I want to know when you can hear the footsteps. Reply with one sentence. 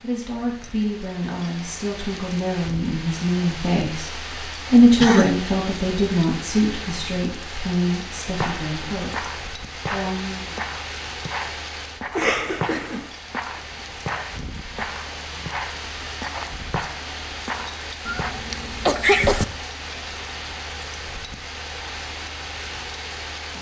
You can hear the footsteps from 8.4 to 18.4 s.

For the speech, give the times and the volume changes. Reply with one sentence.
You can hear the speech from 0.0 to 10.6 s, getting louder then quieter.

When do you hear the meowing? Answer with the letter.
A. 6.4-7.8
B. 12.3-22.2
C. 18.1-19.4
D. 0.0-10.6
C.